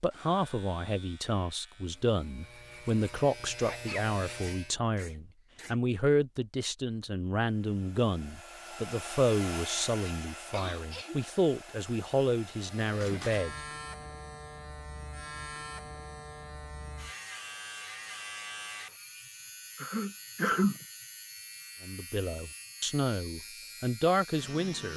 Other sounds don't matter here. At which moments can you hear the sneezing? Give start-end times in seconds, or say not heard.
3.6-5.8, 10.5-11.2, 19.8-20.9.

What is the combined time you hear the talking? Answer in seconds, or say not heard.
17 s.